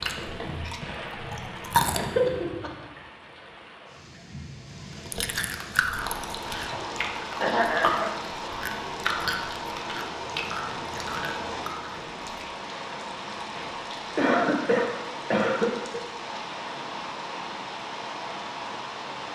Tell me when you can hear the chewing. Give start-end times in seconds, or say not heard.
0.0-2.0, 5.0-12.4.